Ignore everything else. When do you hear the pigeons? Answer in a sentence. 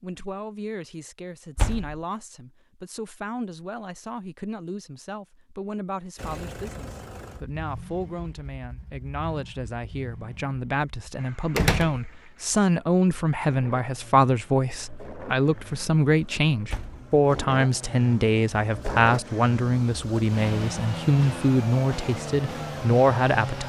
You can't hear the pigeons here.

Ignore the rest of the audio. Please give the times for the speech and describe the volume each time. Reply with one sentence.
The speech can be heard from 0.0 to 23.6 s, getting louder.